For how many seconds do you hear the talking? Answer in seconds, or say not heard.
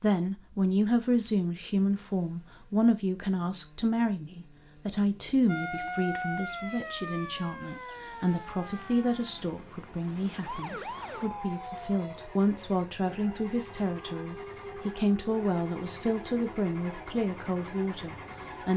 19 s.